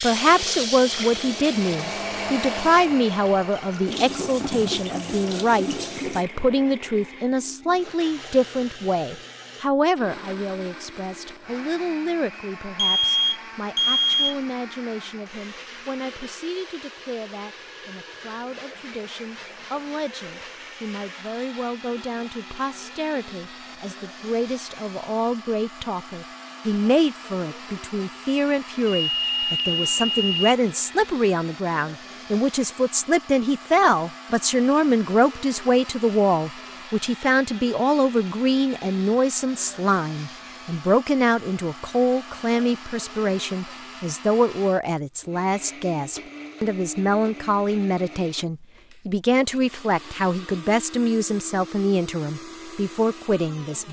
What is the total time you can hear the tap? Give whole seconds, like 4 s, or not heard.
6 s.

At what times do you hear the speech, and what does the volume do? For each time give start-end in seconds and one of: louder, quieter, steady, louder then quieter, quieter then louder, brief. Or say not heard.
0.0-53.8 quieter then louder.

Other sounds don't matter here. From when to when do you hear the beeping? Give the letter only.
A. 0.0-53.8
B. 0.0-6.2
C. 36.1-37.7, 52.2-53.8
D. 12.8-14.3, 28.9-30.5
D.